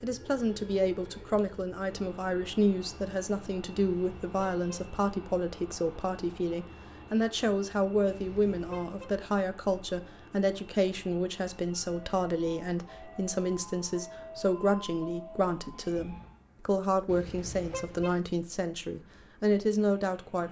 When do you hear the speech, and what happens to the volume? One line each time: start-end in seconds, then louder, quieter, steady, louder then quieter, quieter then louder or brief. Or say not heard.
0.0-20.4 steady.